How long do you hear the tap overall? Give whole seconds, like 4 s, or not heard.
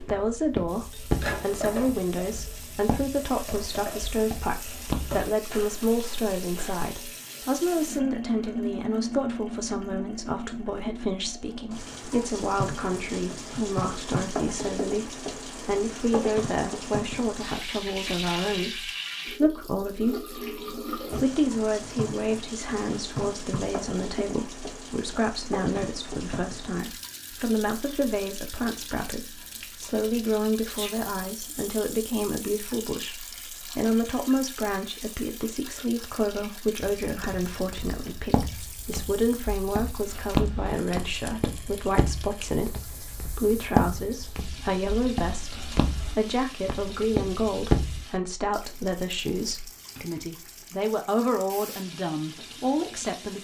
53 s.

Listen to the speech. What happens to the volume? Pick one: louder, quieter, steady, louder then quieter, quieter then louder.
steady.